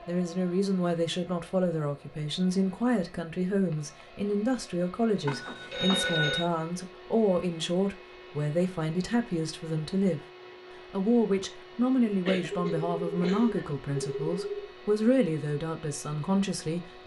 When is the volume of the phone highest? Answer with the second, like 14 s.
6 s.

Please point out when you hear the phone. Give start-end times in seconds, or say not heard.
5.2-6.5, 12.5-14.8.